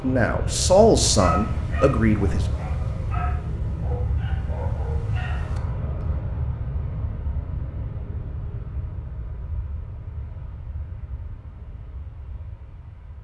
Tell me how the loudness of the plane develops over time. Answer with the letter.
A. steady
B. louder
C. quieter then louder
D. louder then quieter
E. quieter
E.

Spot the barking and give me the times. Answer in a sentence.
You can hear the barking from 1.1 to 6.2 s.